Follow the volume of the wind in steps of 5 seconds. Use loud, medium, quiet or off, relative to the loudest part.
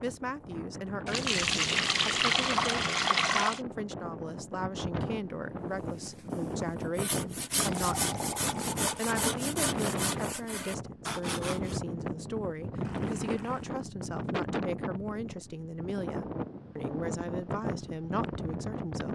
medium, loud, loud, loud.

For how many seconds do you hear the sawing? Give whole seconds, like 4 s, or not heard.
6 s.